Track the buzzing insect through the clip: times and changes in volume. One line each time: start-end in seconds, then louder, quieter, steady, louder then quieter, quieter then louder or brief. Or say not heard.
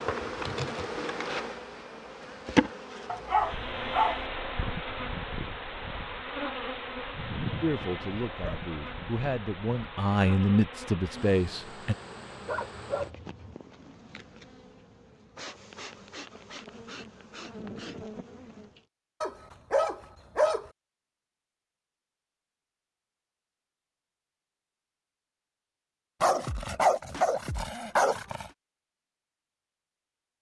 0.0-18.9 quieter.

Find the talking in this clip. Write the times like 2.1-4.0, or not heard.
7.6-11.9.